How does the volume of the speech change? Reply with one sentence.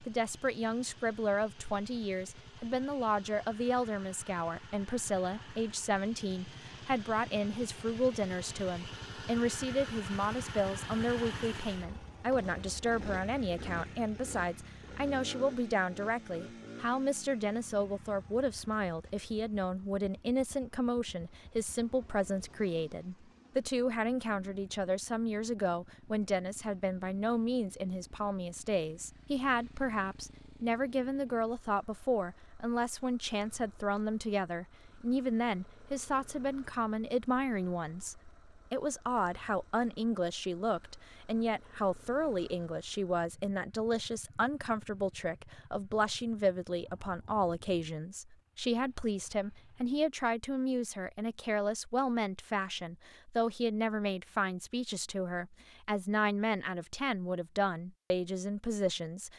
The loudness of the speech stays about the same.